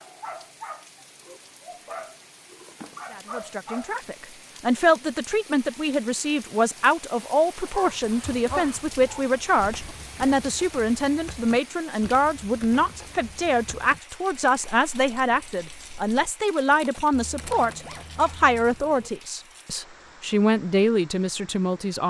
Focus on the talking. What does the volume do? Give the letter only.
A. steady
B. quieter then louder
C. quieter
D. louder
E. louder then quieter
A.